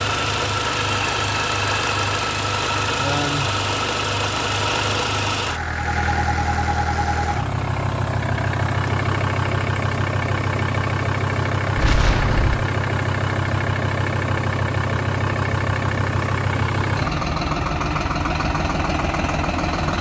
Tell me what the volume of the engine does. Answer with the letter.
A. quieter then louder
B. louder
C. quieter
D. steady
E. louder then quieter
D.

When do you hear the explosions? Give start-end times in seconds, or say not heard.
11.8-12.6.